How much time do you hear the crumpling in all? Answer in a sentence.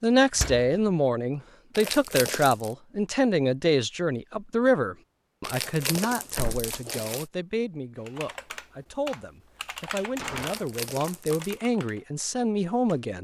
You can hear the crumpling for 4 seconds altogether.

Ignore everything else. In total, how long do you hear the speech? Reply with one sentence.
The speech can be heard for 13 seconds in total.